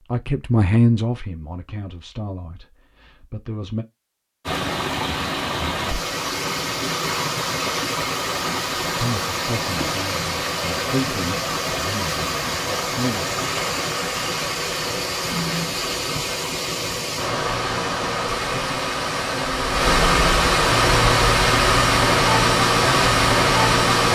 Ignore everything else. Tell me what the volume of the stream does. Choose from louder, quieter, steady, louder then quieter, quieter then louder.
louder.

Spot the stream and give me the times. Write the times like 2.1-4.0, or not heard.
4.5-24.0.